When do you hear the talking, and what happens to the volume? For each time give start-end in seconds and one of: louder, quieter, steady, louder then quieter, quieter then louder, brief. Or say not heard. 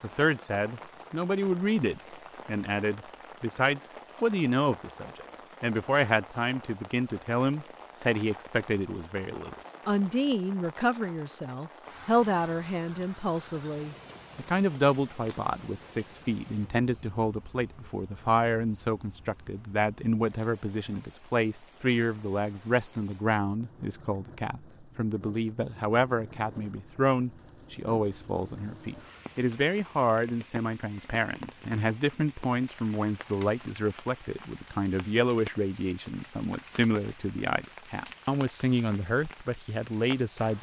0.0-40.5 steady.